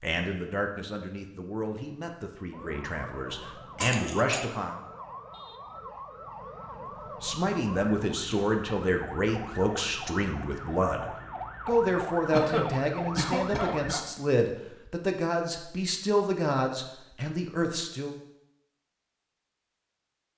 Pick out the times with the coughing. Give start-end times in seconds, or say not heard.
3.8-4.5, 12.3-14.1.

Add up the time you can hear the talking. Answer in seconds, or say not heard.
16 s.